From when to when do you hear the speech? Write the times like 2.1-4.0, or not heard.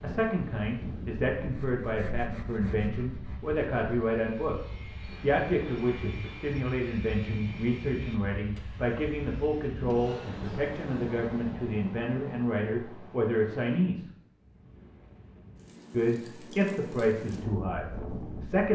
0.0-14.1, 15.9-18.6.